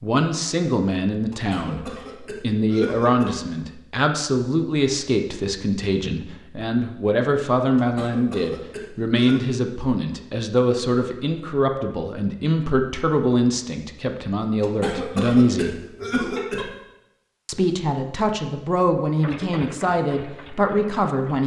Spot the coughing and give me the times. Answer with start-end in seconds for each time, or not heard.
1.3-3.4, 7.8-9.4, 14.6-16.6.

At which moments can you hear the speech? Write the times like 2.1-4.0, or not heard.
0.0-15.7, 17.4-21.4.